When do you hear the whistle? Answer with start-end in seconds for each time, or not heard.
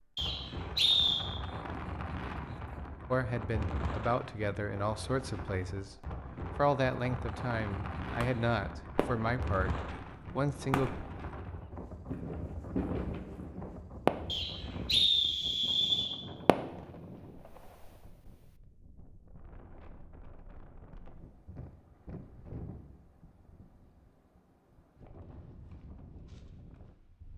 0.1-1.2, 14.2-16.1.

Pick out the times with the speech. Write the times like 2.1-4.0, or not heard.
3.1-10.9.